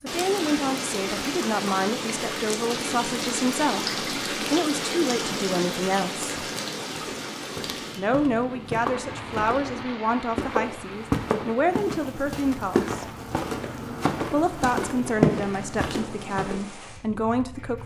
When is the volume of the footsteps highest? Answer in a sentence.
The loudest moment of the footsteps is at 15 seconds.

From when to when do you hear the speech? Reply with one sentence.
You can hear the speech from 0.0 to 6.3 s, from 8.0 to 13.1 s and from 14.3 to 17.8 s.